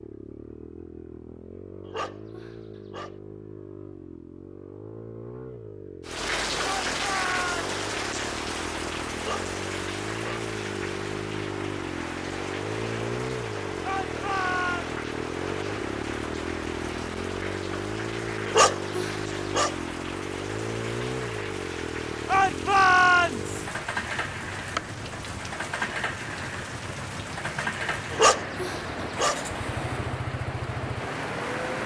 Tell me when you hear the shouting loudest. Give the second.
23 s.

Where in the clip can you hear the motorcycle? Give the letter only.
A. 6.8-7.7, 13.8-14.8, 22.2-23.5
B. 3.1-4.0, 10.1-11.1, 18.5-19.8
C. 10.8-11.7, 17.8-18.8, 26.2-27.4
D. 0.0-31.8
D.